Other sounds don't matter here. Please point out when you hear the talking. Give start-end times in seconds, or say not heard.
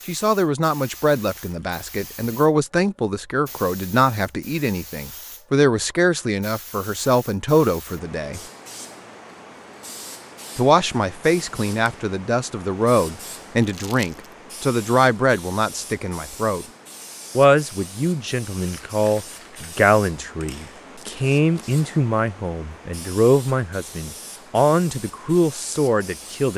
0.1-8.4, 10.6-16.6, 17.4-26.5.